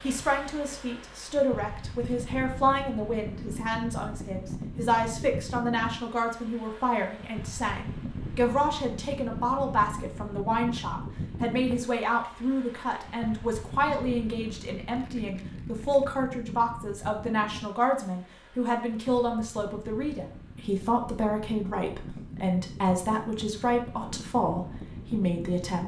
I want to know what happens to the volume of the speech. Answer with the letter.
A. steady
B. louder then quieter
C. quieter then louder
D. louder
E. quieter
A.